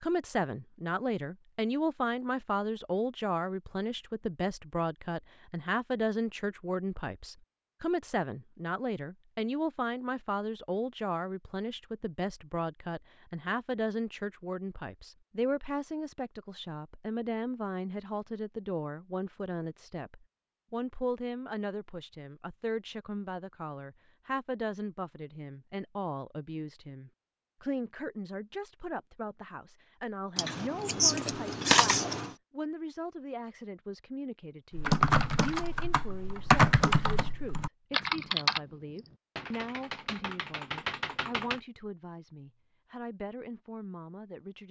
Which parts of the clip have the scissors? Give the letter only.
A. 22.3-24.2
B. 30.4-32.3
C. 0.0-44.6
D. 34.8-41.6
B.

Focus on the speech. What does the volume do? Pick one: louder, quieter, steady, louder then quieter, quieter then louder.
quieter.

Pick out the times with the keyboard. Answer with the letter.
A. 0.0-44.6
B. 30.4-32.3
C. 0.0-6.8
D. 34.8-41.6
D.